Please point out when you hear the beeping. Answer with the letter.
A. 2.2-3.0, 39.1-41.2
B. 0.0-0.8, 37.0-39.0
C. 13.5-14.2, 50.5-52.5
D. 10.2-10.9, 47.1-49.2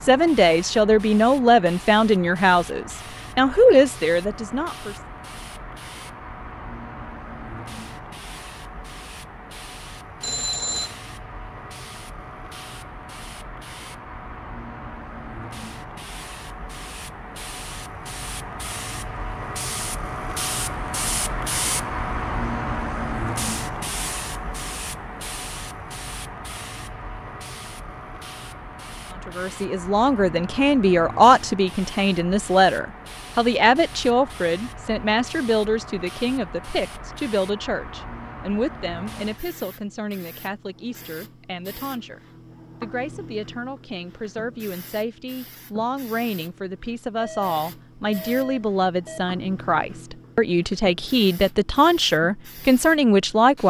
D.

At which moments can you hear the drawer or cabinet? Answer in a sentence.
You can't hear the drawer or cabinet here.